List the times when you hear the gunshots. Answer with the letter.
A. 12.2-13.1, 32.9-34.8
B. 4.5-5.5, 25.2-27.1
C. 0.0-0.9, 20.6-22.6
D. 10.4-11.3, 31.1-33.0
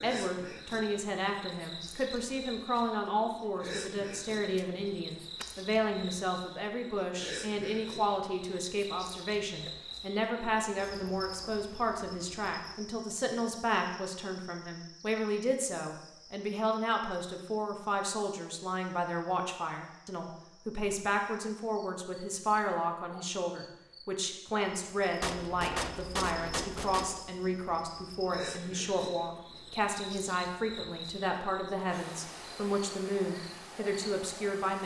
B.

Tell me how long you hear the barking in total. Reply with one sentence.
You can't hear the barking here.